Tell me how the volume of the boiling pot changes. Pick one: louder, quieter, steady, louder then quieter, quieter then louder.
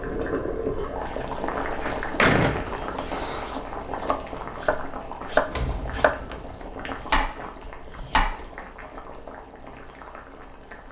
quieter.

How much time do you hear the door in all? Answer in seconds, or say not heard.
3 s.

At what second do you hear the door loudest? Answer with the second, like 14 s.
2 s.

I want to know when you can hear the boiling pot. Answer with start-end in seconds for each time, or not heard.
0.0-10.8.